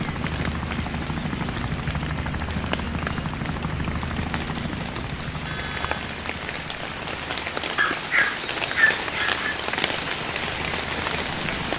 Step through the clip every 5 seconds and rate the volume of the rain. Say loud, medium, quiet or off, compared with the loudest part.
medium, loud, loud.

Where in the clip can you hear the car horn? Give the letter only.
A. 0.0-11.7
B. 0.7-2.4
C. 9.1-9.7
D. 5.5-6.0
D.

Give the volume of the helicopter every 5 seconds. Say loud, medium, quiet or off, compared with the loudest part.
loud, medium, medium.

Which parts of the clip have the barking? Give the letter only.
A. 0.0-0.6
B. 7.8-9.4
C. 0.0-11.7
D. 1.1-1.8
B.